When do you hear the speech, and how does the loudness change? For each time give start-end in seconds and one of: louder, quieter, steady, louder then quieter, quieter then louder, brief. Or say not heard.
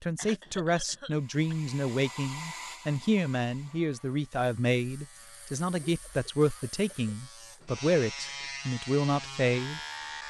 0.0-10.2 steady.